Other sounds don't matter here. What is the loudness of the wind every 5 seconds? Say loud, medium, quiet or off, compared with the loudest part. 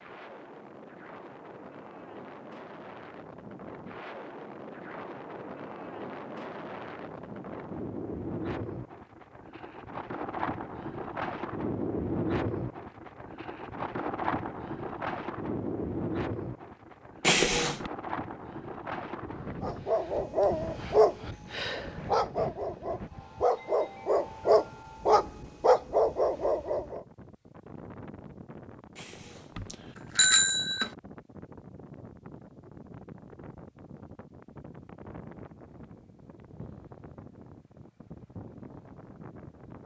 medium, medium, loud, loud, medium, quiet, quiet, quiet.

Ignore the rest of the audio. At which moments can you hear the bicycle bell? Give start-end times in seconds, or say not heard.
17.2-17.9, 28.9-30.9.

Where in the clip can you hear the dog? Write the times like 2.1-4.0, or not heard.
19.6-27.0.